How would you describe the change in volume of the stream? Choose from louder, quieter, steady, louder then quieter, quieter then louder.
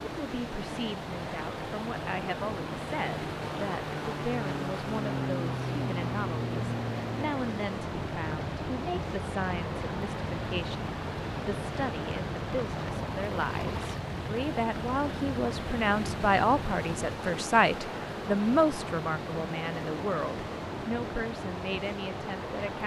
steady.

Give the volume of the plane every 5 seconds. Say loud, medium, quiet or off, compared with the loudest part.
loud, loud, loud, loud, off.